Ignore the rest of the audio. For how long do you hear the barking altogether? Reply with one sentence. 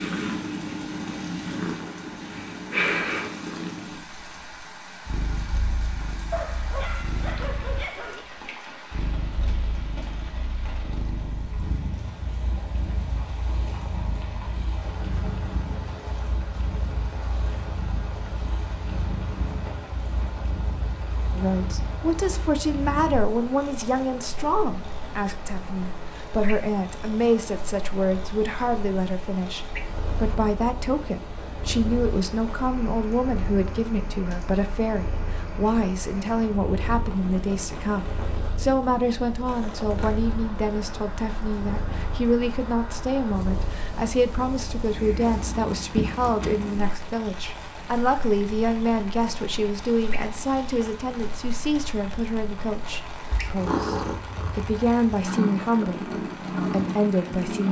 The barking can be heard for 2 seconds in total.